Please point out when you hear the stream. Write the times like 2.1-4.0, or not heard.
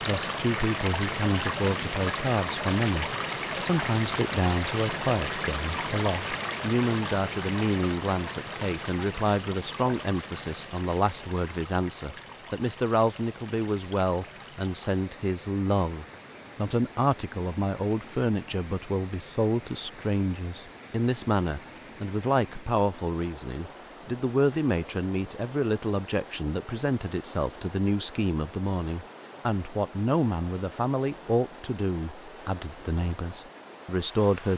0.0-34.5.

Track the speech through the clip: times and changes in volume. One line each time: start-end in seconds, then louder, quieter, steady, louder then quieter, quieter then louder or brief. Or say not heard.
0.0-34.5 steady.